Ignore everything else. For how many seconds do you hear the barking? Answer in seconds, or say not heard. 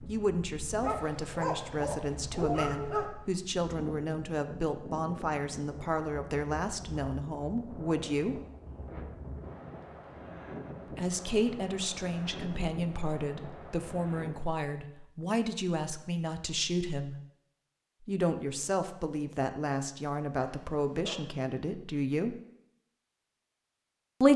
3 s.